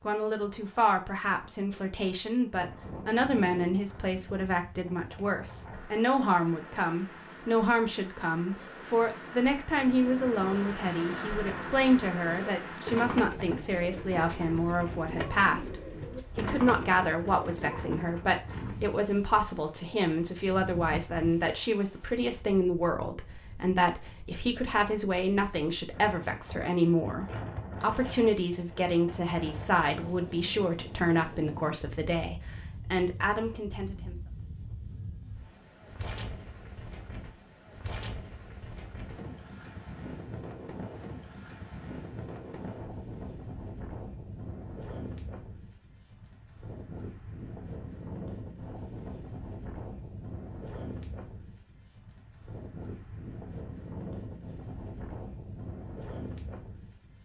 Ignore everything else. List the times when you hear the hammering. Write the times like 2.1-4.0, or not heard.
not heard.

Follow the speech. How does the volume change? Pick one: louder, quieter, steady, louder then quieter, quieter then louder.
steady.